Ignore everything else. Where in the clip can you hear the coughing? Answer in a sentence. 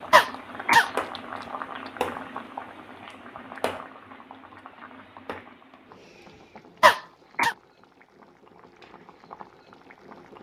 You can hear the coughing from 0.1 to 0.9 s and from 6.8 to 7.5 s.